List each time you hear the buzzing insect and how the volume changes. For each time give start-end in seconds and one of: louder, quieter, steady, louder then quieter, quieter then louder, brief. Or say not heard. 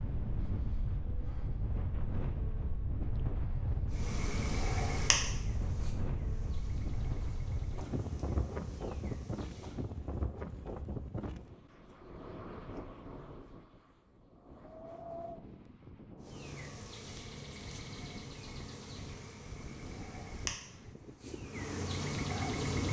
3.9-9.9 quieter
16.1-22.8 louder.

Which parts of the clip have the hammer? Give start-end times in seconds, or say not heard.
not heard.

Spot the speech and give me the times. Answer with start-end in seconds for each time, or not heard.
not heard.